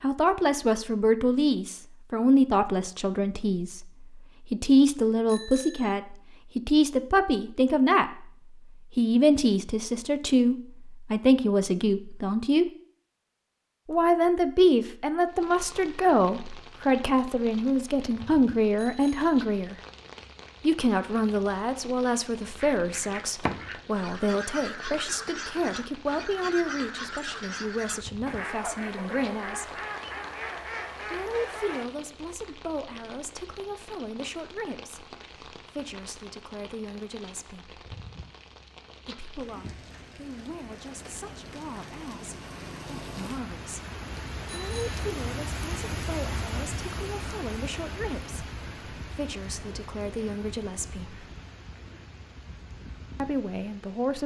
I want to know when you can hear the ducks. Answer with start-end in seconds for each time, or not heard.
22.6-31.9.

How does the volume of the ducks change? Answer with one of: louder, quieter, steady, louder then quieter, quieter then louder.
steady.